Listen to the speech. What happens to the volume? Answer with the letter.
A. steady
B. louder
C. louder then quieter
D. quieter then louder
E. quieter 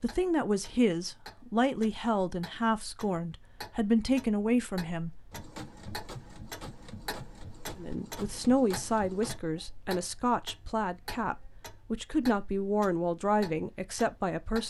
A.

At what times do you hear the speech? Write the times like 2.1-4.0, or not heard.
0.0-5.1, 7.8-14.6.